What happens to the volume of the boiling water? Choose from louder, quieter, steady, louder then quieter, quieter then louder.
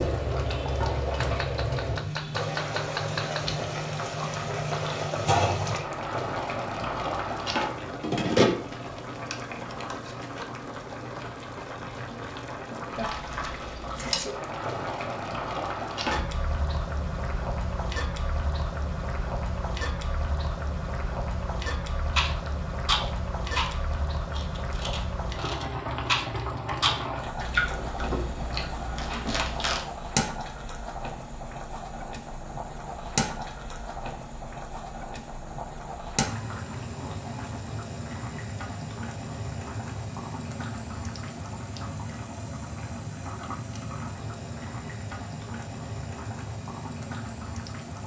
quieter.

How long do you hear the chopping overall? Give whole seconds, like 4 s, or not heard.
2 s.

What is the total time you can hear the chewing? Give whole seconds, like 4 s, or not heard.
8 s.